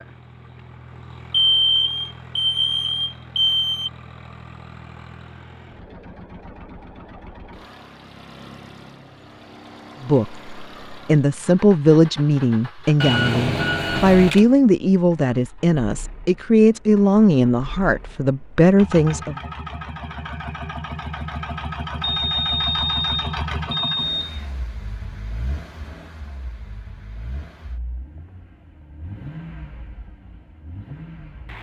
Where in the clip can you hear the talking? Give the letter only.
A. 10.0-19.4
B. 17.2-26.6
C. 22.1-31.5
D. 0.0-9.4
A.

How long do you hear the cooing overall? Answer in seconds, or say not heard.
not heard.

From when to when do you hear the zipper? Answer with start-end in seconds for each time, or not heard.
not heard.